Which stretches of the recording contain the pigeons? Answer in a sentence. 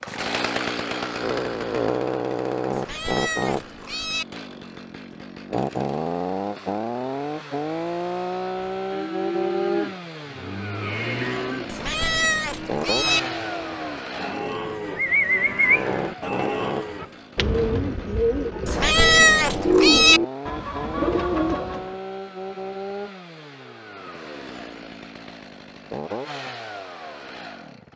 You can hear the pigeons from 14.9 to 21.9 s.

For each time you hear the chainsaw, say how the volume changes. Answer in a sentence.
You can hear the chainsaw from 0.0 to 27.9 s, getting quieter.